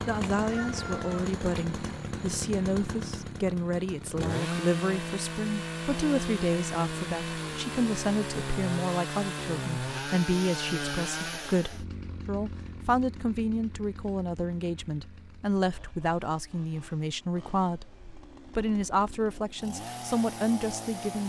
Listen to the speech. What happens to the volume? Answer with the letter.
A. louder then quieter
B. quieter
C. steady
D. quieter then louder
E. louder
C.